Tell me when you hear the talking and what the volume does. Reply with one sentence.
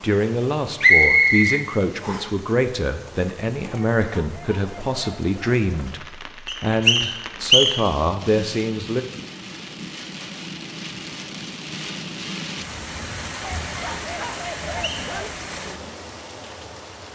The talking can be heard from 0.0 to 9.1 s, at a steady volume.